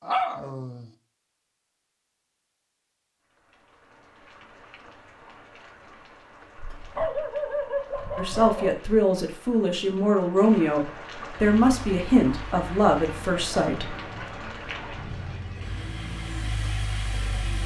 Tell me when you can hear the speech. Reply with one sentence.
The speech can be heard from 8.2 to 13.9 s.